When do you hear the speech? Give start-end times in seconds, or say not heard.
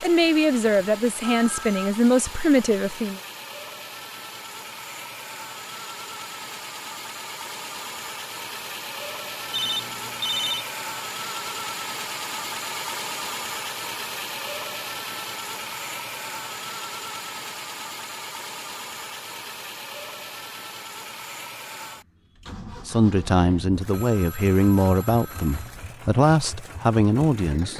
0.0-3.2, 22.9-27.7.